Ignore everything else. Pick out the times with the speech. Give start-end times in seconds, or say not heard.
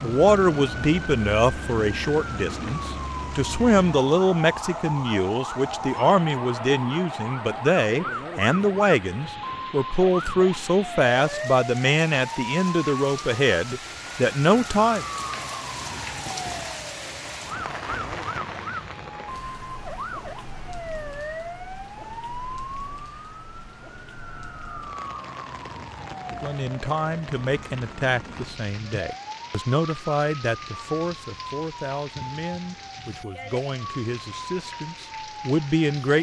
0.0-15.1, 26.4-36.1.